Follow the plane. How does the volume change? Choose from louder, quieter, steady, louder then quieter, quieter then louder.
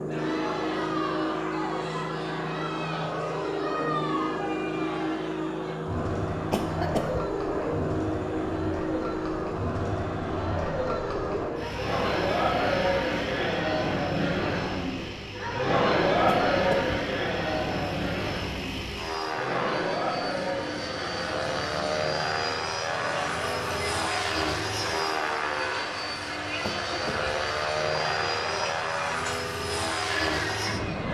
quieter then louder.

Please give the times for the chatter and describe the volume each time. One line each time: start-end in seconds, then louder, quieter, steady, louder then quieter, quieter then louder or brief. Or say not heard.
0.1-31.0 louder then quieter.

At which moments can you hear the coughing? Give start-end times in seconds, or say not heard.
6.5-7.2, 16.2-16.9, 26.6-27.4.